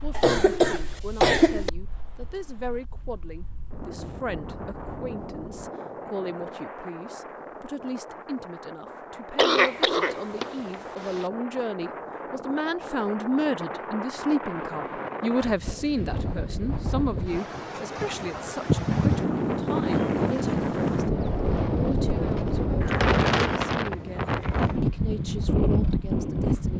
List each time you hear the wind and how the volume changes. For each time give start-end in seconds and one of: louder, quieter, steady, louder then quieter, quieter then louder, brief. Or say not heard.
0.0-26.7 louder.